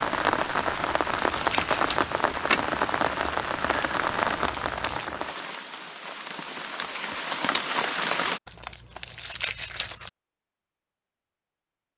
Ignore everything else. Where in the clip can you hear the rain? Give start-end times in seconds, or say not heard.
0.0-8.4.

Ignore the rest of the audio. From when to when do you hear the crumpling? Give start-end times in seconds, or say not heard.
0.6-2.2, 4.2-5.1, 8.4-10.1.